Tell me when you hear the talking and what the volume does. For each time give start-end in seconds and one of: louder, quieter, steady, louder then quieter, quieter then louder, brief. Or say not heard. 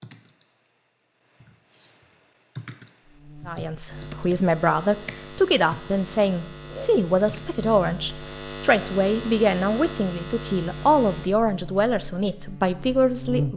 3.5-13.5 steady.